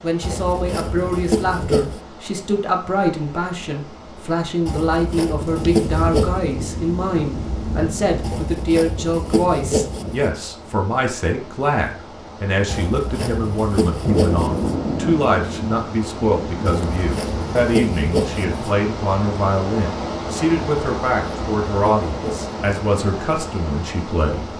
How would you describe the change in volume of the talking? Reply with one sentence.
The volume of the talking stays about the same.